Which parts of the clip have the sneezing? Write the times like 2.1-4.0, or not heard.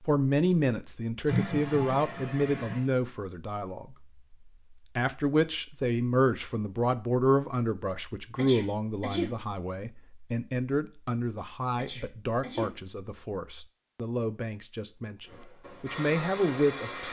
1.2-2.9, 8.3-9.3, 11.8-12.8.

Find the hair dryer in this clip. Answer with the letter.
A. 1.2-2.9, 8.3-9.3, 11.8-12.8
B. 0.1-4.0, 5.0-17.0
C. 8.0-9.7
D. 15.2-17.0
D.